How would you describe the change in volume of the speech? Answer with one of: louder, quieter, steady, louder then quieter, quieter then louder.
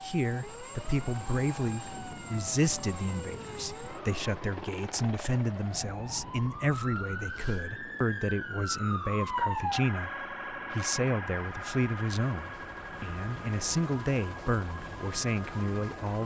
steady.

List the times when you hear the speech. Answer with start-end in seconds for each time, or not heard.
0.0-16.2.